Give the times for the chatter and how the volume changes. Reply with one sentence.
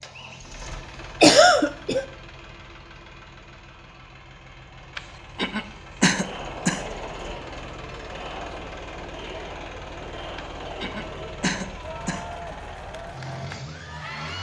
The chatter can be heard from 6.0 to 14.3 s, at a steady volume.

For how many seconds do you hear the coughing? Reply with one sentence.
You can hear the coughing for 5 seconds altogether.